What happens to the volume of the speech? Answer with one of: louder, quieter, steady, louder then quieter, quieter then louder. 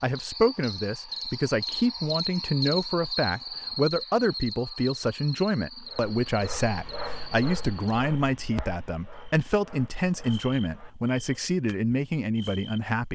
steady.